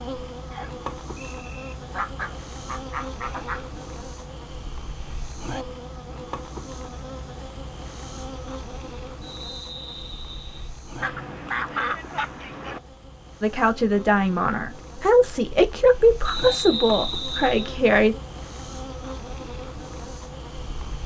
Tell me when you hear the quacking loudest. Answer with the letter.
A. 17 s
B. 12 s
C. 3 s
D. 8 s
B.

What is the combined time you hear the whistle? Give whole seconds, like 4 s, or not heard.
4 s.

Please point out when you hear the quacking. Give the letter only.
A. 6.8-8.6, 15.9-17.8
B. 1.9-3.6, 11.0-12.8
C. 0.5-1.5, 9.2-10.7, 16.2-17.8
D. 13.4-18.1
B.